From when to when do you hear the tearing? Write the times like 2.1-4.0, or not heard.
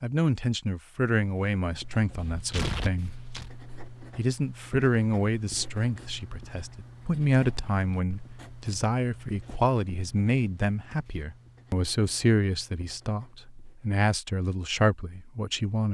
2.2-3.5.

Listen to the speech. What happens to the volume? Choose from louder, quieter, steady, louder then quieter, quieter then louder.
steady.